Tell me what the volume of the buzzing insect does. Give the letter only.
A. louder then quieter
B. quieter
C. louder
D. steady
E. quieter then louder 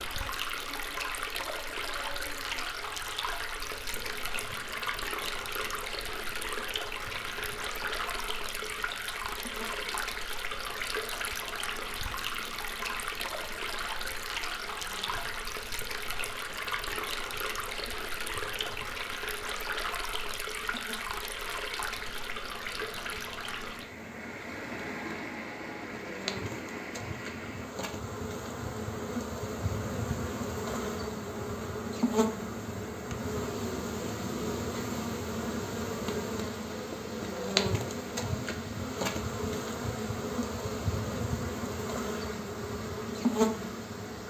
C.